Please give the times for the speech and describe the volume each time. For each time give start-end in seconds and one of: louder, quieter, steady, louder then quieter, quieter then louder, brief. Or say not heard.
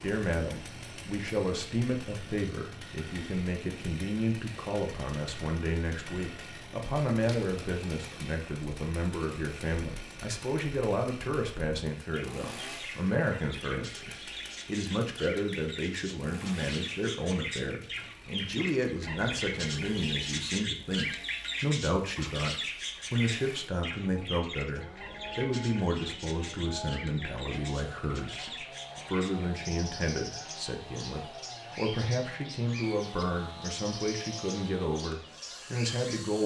0.0-36.4 steady.